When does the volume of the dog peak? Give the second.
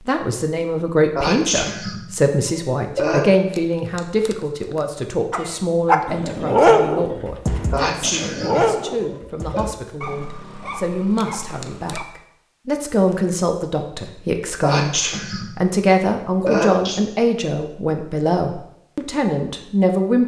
7 s.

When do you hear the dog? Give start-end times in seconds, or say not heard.
5.3-12.1.